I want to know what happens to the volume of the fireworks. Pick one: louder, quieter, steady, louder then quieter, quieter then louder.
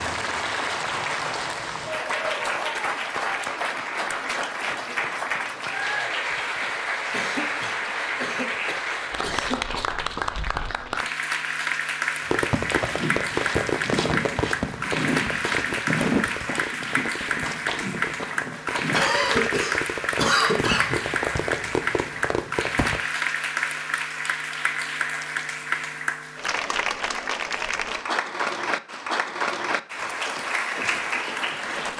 quieter then louder.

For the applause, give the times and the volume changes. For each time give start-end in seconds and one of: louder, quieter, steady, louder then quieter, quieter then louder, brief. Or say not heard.
0.0-31.9 steady.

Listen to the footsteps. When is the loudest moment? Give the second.
16 s.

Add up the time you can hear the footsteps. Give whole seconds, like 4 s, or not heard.
7 s.